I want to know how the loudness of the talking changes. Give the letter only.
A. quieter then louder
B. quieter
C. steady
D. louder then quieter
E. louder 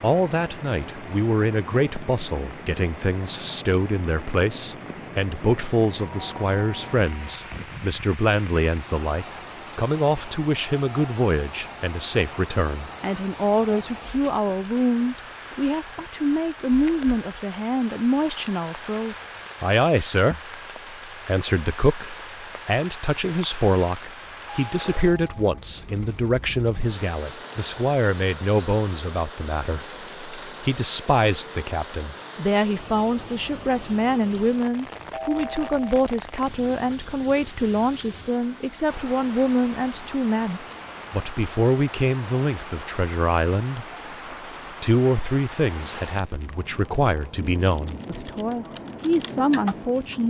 C.